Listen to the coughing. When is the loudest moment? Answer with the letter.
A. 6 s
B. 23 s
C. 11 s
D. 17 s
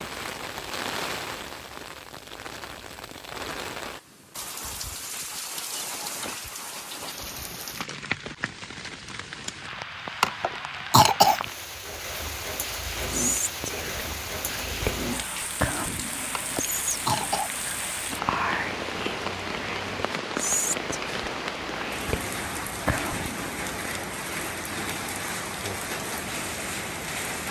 C.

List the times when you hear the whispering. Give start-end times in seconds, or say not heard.
13.1-23.7.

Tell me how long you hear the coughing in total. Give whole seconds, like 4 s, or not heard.
3 s.